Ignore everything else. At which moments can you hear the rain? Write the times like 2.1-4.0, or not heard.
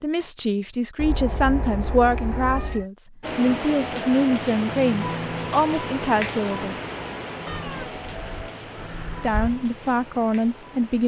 3.2-11.0.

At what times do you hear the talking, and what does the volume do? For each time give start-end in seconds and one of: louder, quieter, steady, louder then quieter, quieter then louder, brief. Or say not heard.
0.0-6.8 steady
9.2-11.0 brief.